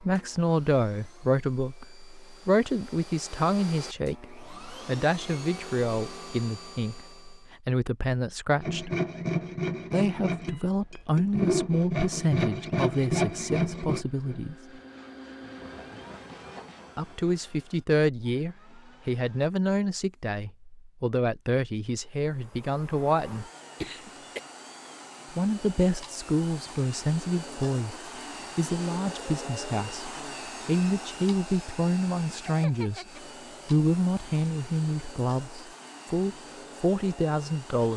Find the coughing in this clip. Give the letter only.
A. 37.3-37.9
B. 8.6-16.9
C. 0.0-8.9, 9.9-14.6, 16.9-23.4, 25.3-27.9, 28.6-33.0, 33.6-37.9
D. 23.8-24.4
D.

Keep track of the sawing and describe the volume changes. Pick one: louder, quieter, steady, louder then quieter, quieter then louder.
quieter.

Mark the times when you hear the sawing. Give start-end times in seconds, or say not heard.
8.6-16.9.